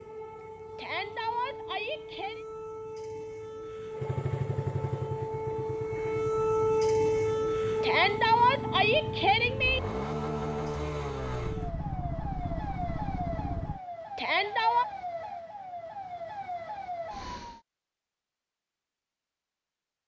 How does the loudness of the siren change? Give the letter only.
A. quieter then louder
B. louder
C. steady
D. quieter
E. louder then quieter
E.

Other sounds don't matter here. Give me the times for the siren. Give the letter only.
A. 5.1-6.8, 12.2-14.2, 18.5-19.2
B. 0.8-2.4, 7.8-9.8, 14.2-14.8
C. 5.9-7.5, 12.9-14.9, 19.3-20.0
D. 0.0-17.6
D.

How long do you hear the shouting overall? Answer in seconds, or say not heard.
4 s.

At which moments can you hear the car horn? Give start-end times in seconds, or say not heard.
not heard.